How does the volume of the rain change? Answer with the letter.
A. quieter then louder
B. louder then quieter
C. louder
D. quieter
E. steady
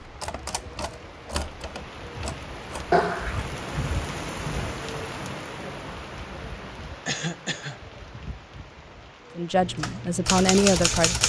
B.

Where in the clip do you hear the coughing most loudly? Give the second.
3 s.